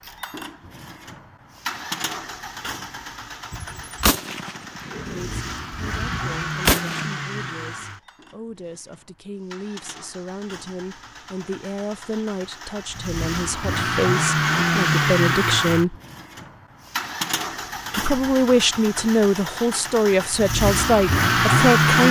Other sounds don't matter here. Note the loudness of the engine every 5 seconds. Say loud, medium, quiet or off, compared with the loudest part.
quiet, quiet, medium, medium, loud.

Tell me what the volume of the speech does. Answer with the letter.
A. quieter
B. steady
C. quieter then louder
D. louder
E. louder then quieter
D.